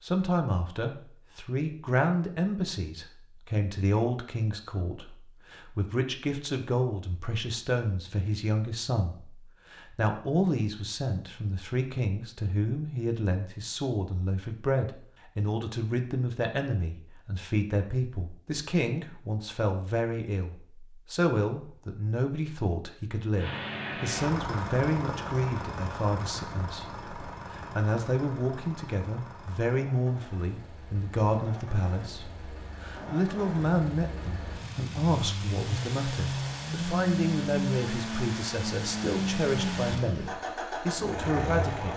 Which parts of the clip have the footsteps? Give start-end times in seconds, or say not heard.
not heard.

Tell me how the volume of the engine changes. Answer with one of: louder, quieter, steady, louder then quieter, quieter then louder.
quieter then louder.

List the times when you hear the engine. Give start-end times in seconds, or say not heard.
23.4-41.9.